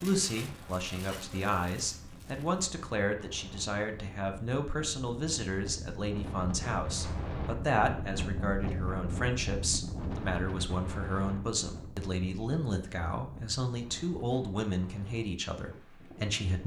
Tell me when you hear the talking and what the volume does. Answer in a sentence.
The talking can be heard from 0.0 to 16.6 s, at a steady volume.